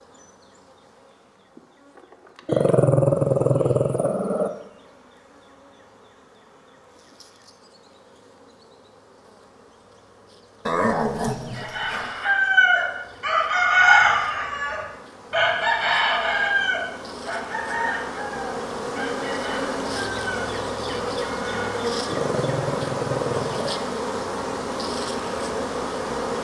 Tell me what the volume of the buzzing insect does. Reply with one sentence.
The volume of the buzzing insect goes up.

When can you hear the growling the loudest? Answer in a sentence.
The volume of the growling peaks at 3 seconds.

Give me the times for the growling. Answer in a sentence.
You can hear the growling from 2.5 to 4.5 s, from 10.7 to 12.2 s and from 22.1 to 23.8 s.